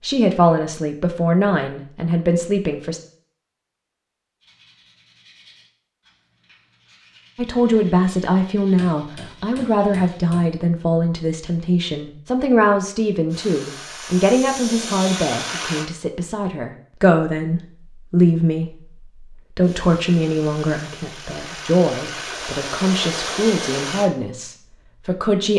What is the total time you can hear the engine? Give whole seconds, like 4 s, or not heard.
7 s.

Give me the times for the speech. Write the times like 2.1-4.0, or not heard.
0.0-3.0, 7.3-25.5.